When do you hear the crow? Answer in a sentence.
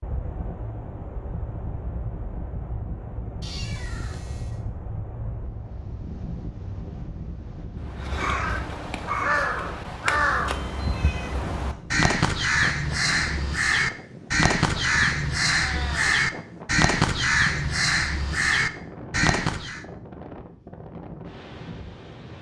The crow can be heard from 7.8 to 19.9 s.